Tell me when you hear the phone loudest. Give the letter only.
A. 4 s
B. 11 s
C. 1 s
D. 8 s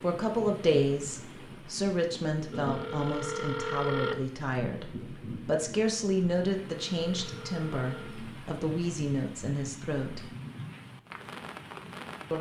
A.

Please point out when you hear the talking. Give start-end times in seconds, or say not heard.
0.0-10.2.